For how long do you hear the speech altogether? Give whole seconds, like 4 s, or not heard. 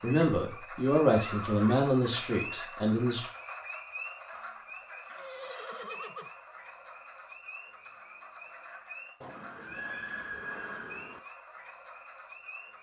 3 s.